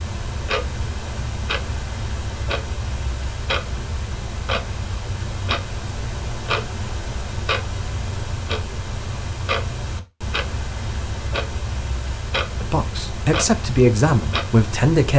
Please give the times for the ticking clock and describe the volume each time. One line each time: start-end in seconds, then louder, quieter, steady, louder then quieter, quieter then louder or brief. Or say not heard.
0.0-15.1 steady.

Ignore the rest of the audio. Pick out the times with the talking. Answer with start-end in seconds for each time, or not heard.
12.6-15.1.